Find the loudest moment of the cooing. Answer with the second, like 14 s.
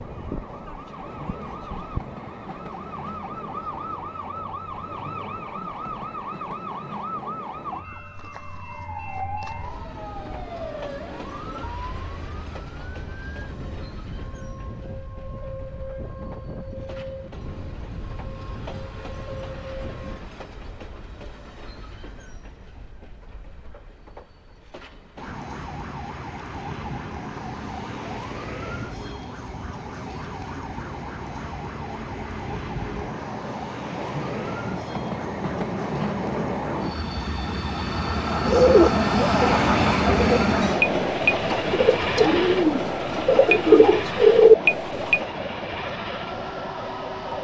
44 s.